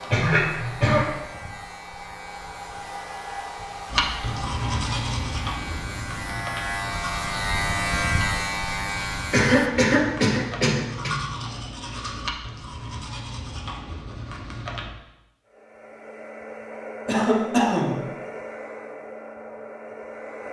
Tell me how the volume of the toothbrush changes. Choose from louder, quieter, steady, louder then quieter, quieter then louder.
quieter.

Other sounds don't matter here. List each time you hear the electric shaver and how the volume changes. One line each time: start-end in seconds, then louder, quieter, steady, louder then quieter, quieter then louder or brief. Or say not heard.
0.0-9.6 louder.